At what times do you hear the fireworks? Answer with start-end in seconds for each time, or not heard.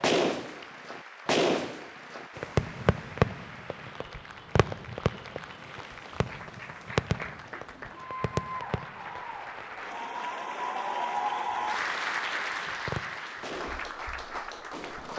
0.0-9.7, 12.7-15.1.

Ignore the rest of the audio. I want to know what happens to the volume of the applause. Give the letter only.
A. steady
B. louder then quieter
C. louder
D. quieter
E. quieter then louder
C.